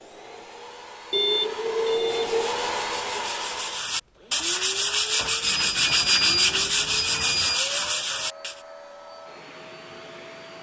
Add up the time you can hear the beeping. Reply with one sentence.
The beeping can be heard for 4 seconds in total.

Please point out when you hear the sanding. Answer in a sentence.
The sanding can be heard from 1.9 to 8.6 s.